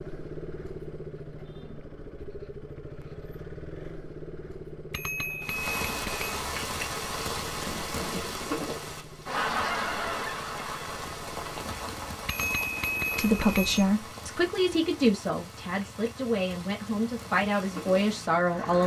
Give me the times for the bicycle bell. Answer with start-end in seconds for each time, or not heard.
4.9-6.5, 12.2-13.8.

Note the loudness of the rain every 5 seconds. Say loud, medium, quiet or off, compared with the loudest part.
off, loud, medium, medium.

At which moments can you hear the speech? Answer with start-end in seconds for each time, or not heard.
13.2-18.8.